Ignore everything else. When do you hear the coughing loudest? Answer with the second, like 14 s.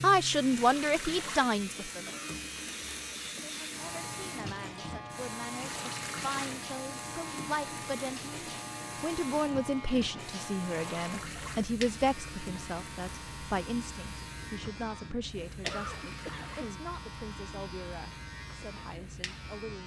16 s.